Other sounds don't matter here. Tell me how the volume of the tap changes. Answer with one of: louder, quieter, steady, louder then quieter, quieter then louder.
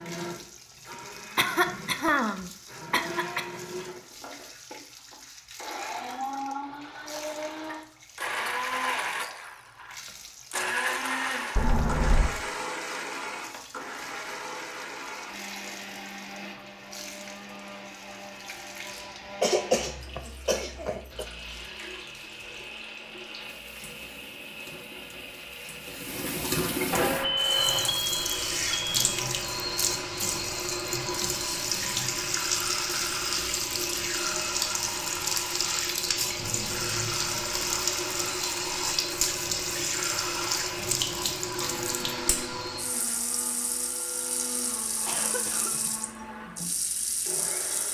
louder.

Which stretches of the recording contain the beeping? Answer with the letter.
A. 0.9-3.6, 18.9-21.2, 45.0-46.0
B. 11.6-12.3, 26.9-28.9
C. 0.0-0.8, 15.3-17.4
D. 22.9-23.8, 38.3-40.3
B.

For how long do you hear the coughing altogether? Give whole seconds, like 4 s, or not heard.
6 s.